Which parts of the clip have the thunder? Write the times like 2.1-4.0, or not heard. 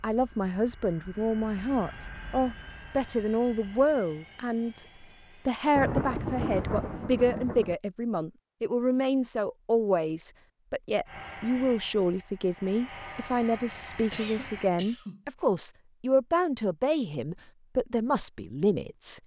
5.8-7.8.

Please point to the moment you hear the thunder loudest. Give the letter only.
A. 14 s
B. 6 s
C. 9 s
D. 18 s
B.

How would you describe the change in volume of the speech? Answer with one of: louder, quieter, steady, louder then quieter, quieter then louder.
steady.